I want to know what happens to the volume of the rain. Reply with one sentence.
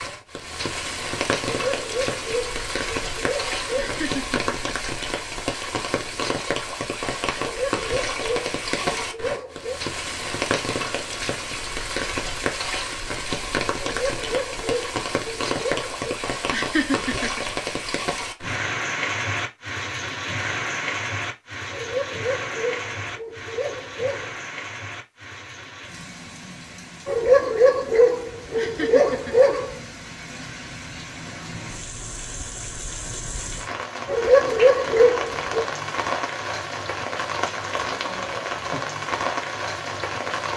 The loudness of the rain goes down, then up.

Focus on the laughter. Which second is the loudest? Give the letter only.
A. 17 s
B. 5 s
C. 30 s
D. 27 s
A.